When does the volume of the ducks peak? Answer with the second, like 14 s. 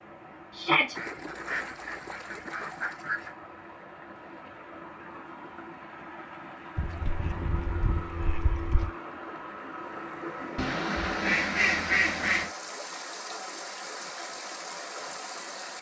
12 s.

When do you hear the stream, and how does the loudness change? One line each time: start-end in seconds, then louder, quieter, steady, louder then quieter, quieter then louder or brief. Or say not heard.
0.0-15.7 louder.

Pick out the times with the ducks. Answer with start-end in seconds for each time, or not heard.
0.9-3.4, 6.8-8.9, 10.6-12.5.